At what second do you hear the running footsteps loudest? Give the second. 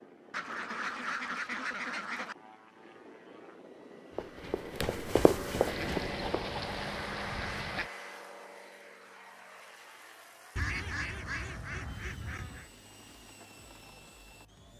5 s.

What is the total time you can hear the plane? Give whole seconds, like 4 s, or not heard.
15 s.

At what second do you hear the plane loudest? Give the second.
6 s.